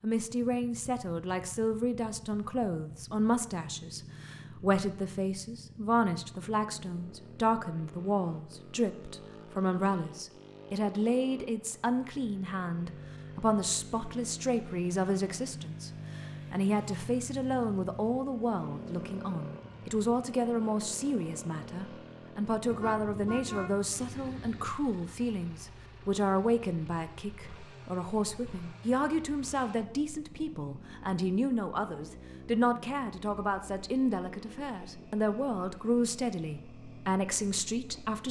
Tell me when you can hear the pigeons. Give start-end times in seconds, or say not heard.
not heard.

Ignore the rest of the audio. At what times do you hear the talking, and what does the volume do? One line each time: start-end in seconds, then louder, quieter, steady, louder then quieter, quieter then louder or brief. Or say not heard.
0.0-38.2 steady.